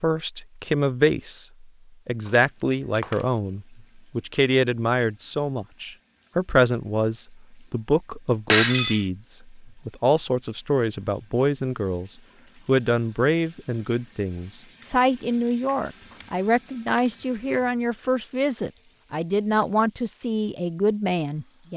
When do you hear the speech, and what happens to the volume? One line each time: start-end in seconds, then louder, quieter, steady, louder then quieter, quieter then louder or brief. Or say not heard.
0.0-21.7 steady.